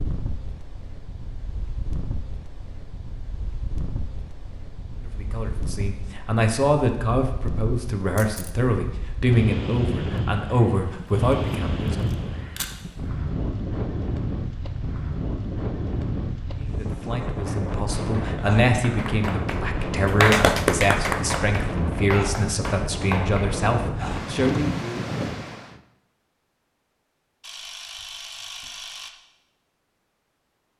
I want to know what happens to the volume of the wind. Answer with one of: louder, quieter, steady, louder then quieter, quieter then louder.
louder.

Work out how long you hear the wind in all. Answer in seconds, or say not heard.
26 s.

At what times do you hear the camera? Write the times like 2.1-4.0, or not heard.
8.2-8.6, 11.5-12.8, 27.4-29.1.